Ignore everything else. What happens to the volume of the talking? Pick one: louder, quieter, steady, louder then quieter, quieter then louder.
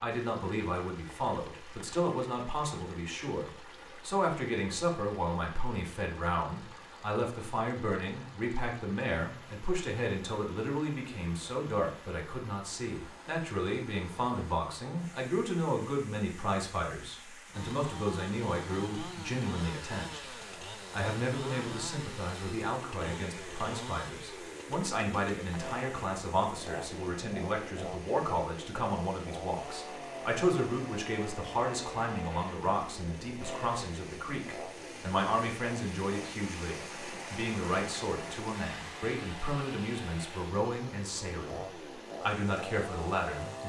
steady.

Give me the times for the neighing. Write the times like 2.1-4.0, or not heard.
not heard.